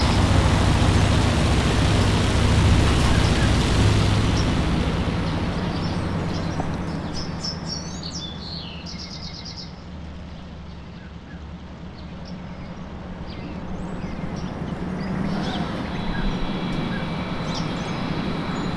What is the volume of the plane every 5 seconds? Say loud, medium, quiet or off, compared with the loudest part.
loud, quiet, quiet, quiet.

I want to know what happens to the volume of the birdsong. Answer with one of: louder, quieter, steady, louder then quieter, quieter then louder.
quieter then louder.